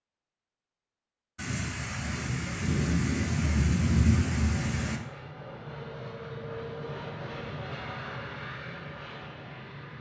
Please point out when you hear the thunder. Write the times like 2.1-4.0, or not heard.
1.4-5.0.